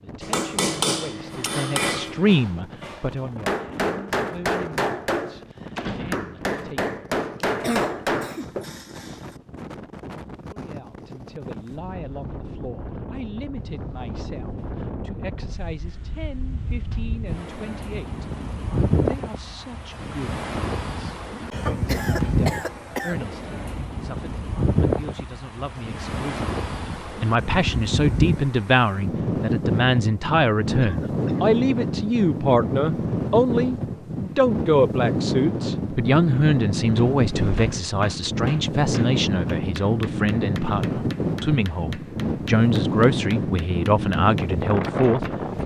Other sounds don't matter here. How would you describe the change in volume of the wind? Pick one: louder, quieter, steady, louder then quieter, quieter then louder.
louder.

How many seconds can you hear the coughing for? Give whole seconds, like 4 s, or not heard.
4 s.